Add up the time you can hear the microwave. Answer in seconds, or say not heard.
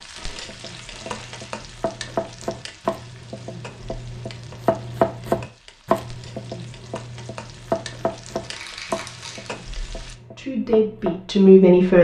not heard.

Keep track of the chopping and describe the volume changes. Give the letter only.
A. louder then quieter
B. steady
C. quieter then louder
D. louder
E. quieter
A.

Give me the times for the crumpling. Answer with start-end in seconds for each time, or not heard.
0.1-1.5, 8.4-9.6.